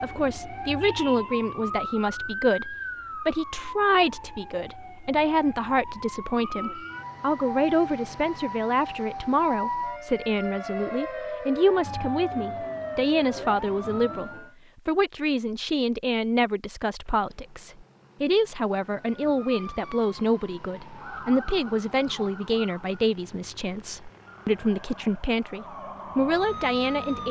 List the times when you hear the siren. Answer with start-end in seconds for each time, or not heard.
0.0-14.6, 18.9-23.0, 24.2-27.2.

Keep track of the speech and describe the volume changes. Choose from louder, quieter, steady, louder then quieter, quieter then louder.
steady.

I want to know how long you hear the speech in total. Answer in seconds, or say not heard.
27 s.